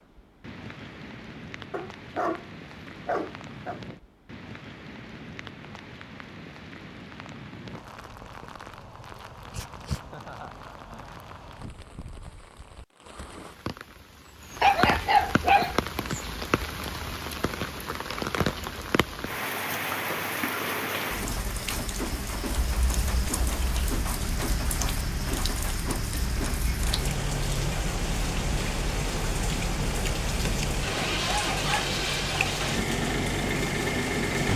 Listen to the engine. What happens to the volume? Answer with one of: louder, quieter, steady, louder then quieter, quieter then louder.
louder.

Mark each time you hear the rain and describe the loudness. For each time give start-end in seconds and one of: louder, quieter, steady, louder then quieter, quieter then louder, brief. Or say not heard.
0.0-34.5 louder.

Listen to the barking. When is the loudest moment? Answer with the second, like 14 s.
15 s.